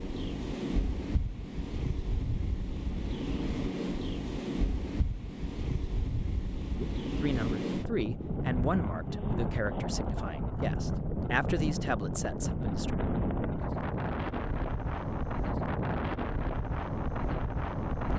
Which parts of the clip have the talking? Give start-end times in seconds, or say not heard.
6.8-12.9.